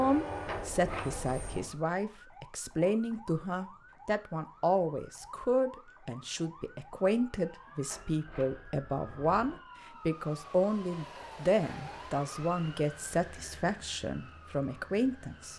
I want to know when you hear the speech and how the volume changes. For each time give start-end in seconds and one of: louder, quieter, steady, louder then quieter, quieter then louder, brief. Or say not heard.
0.0-15.5 steady.